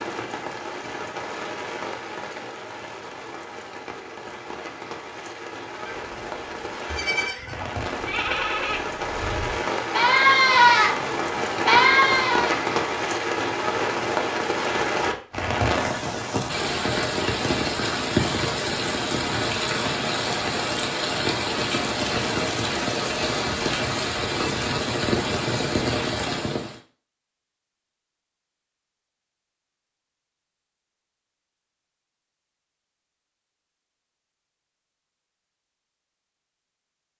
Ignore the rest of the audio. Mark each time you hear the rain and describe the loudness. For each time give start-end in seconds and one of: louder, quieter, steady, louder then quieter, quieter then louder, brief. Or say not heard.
0.0-26.8 louder.